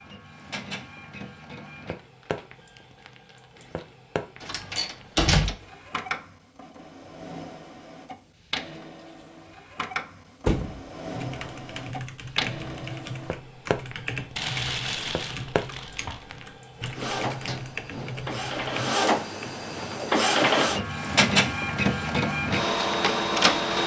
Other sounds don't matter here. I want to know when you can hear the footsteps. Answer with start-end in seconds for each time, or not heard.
not heard.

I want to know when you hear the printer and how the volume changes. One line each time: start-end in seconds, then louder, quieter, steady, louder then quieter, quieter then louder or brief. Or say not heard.
0.0-23.8 louder.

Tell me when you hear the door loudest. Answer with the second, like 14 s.
5 s.